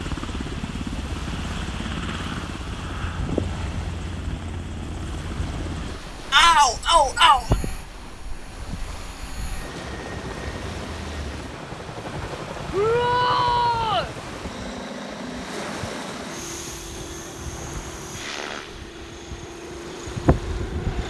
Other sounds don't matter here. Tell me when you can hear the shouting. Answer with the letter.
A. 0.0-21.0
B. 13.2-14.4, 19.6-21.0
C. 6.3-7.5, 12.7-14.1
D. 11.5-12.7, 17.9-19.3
C.